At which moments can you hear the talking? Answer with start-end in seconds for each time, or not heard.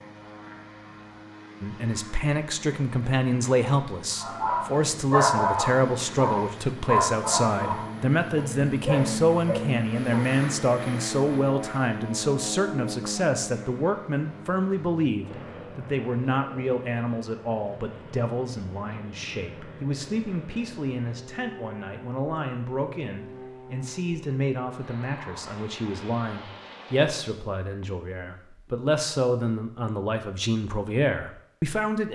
1.6-32.0.